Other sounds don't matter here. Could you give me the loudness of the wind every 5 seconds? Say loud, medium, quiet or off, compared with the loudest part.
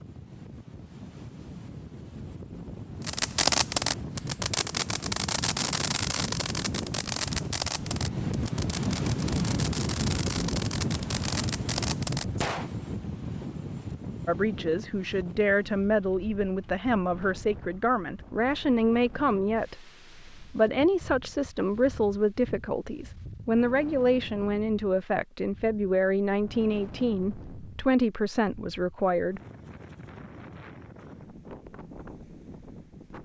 medium, loud, loud, quiet, quiet, quiet, quiet.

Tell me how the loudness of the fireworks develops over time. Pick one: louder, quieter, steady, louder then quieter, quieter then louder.
quieter.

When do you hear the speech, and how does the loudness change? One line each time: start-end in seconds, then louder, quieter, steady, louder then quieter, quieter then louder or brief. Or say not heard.
14.2-29.4 steady.